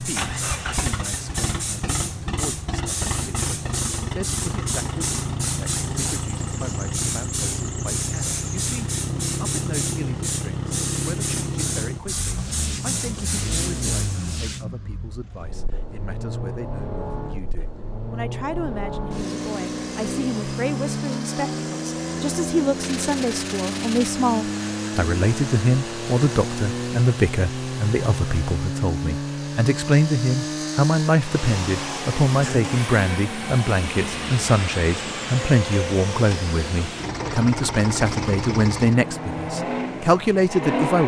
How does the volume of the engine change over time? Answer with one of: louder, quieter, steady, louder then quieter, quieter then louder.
steady.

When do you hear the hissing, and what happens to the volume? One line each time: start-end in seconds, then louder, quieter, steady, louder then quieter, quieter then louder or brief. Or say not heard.
0.0-14.6 steady.